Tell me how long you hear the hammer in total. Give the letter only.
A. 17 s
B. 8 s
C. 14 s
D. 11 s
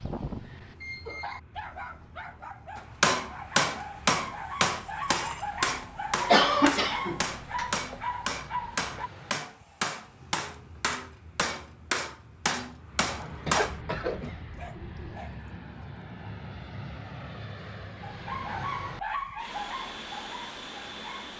D.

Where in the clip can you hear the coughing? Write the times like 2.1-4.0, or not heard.
6.2-7.7, 13.4-15.2.